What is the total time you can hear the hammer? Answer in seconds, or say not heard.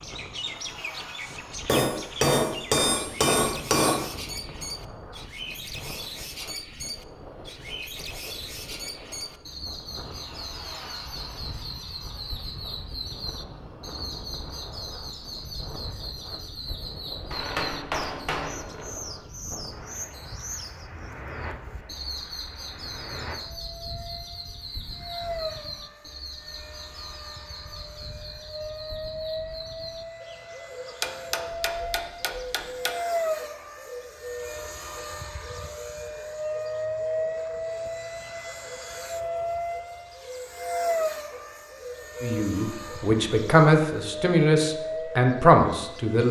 6 s.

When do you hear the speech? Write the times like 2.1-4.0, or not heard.
42.2-46.2.